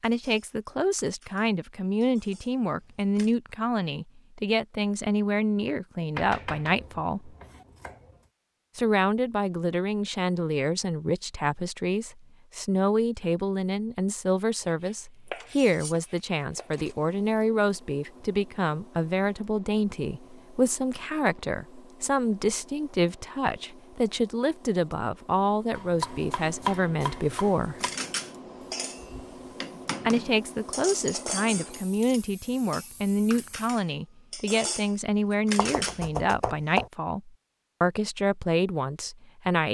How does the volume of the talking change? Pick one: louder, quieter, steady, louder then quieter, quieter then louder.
steady.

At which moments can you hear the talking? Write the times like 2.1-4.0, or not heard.
0.0-7.3, 8.8-27.8, 30.1-39.6.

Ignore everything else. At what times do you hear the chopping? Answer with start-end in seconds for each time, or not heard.
6.2-8.2, 14.6-16.9, 25.8-27.7, 35.5-36.9.